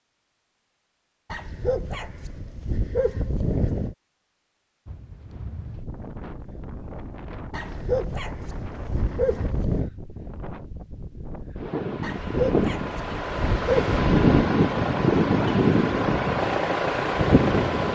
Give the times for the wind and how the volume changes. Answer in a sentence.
You can hear the wind from 4.8 to 17.9 s, getting louder.